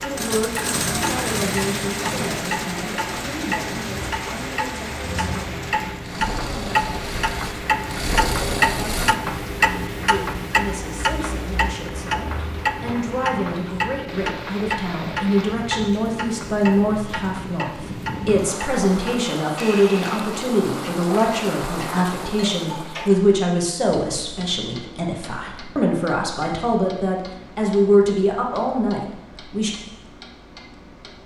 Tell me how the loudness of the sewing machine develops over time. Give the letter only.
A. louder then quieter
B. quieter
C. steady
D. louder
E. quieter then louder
E.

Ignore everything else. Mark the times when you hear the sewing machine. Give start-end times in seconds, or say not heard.
0.0-9.2.